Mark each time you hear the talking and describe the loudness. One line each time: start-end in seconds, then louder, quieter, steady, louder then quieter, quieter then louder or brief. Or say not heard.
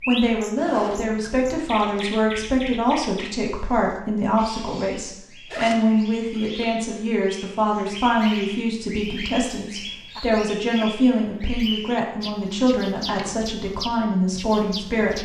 0.1-15.2 steady.